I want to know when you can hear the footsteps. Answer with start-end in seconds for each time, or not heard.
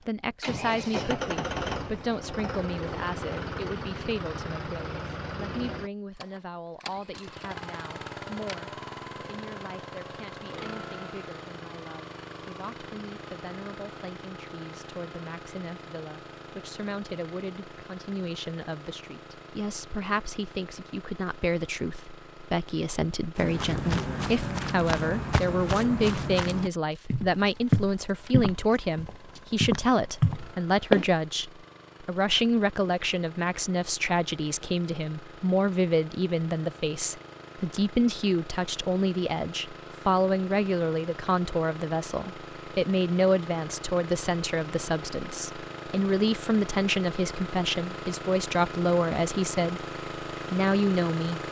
23.4-31.1.